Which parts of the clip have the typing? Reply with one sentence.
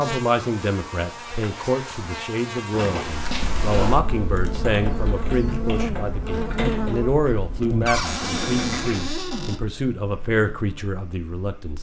You can hear the typing from 3.3 to 9.2 s.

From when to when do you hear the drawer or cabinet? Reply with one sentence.
The drawer or cabinet can be heard from 2.7 to 4.1 s and from 7.8 to 9.6 s.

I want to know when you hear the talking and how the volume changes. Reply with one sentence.
You can hear the talking from 0.0 to 11.7 s, at a steady volume.